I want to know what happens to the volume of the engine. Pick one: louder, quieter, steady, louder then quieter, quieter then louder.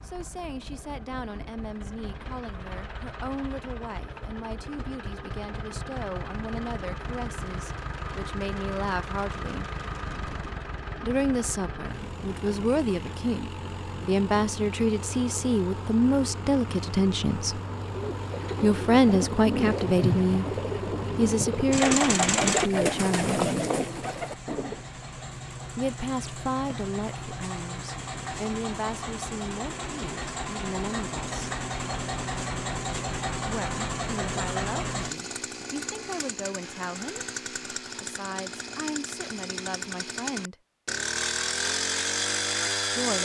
louder.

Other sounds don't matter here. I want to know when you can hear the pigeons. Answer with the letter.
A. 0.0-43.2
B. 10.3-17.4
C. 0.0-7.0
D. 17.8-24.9
D.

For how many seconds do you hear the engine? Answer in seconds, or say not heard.
43 s.